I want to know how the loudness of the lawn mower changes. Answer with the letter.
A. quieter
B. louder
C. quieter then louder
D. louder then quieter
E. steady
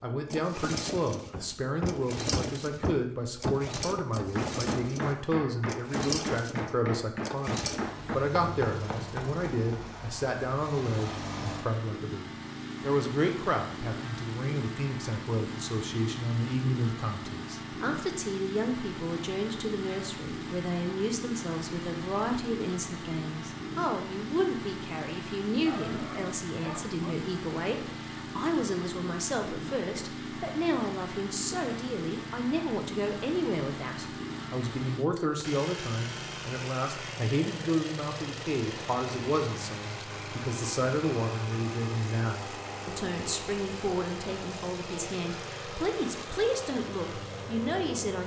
E.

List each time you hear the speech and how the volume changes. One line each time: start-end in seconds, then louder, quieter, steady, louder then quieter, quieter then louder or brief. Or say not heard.
0.0-48.2 steady.